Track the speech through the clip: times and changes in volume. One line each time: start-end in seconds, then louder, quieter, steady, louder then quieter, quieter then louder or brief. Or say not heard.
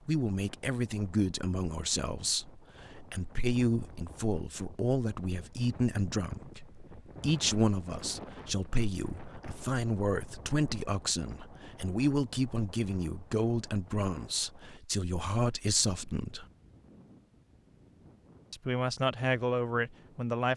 0.1-16.4 steady
18.5-20.5 brief.